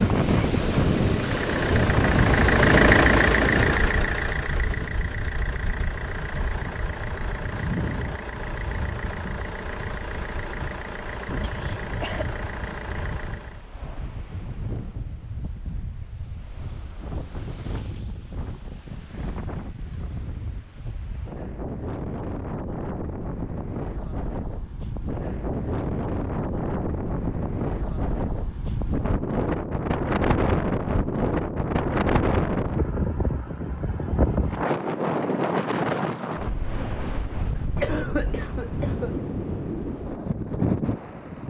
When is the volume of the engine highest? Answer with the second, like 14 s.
3 s.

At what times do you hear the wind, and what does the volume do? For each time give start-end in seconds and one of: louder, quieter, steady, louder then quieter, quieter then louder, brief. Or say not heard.
0.0-41.4 quieter then louder.